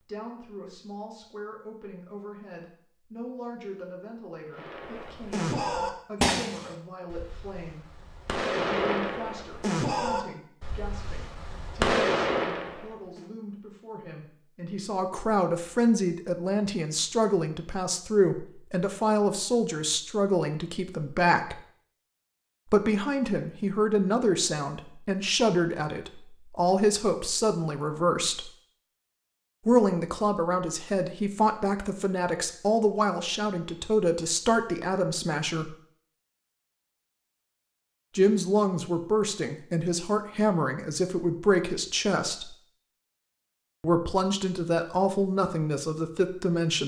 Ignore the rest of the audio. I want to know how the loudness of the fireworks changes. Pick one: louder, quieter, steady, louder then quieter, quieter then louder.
quieter then louder.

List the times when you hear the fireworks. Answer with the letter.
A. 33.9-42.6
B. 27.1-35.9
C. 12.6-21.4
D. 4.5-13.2
D.